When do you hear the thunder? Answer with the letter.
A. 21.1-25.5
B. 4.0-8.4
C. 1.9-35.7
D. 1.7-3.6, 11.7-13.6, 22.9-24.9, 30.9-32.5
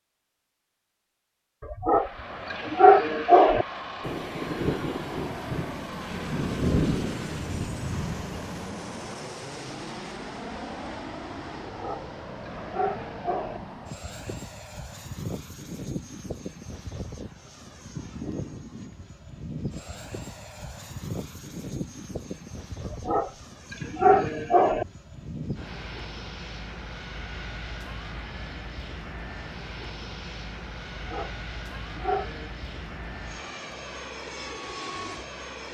B.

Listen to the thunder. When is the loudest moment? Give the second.
7 s.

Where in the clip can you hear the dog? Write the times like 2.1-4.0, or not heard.
1.7-3.6, 11.7-13.6, 22.9-24.9, 30.9-32.5.